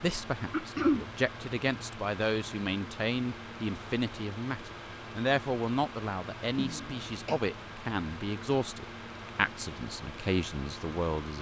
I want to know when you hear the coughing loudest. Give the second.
1 s.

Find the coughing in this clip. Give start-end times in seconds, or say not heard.
0.5-1.1, 6.5-7.4.